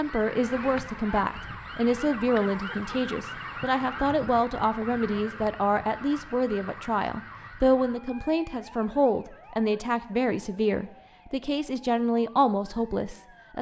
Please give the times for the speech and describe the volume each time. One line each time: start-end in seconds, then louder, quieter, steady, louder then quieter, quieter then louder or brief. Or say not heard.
0.0-13.5 steady.